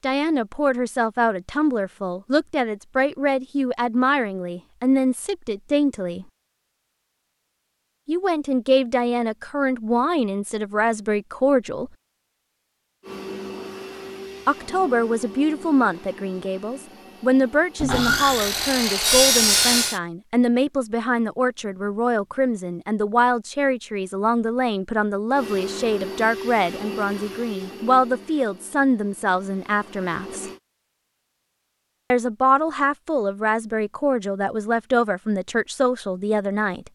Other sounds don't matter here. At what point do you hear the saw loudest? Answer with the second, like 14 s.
19 s.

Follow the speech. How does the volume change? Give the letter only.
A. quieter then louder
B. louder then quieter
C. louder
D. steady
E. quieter
D.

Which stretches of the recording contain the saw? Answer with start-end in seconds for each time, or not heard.
17.8-20.0.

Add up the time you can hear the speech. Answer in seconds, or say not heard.
31 s.